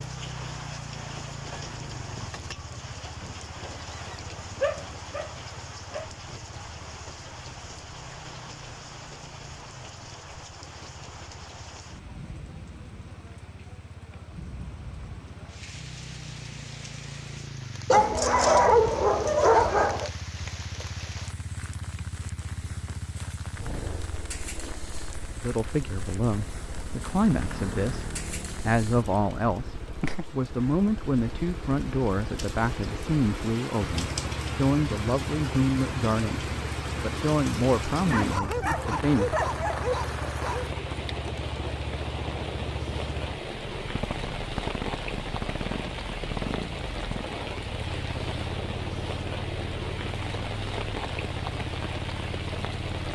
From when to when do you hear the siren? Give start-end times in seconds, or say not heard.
not heard.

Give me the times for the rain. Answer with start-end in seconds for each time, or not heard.
0.0-53.1.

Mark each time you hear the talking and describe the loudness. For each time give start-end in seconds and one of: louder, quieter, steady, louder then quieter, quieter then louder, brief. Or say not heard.
25.4-39.4 steady.